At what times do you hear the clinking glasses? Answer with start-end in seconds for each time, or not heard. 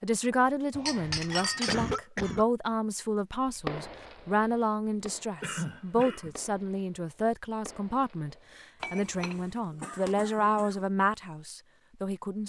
0.7-1.9, 8.8-9.4.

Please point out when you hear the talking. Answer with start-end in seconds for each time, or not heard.
0.0-12.4.